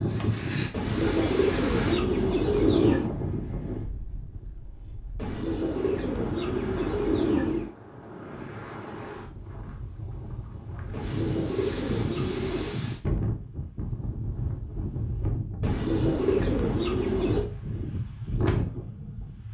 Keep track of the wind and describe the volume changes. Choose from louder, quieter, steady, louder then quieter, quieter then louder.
quieter then louder.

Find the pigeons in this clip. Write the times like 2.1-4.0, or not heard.
0.7-3.1, 5.2-7.8, 10.9-12.8, 15.6-17.4.